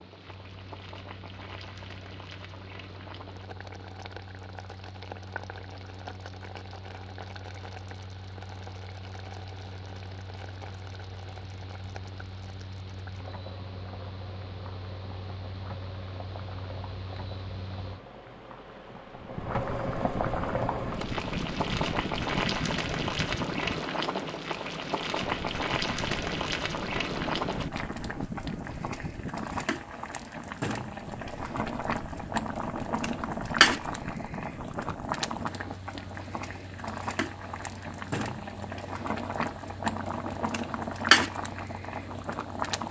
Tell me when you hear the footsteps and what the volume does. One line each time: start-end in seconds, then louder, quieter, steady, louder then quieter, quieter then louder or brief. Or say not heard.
not heard.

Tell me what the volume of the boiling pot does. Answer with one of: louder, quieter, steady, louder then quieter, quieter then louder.
louder.